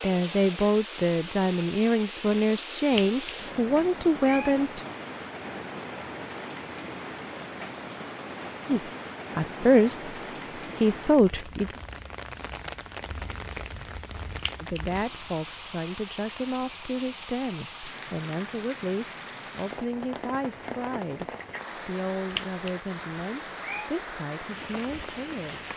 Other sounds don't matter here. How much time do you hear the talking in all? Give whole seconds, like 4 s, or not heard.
18 s.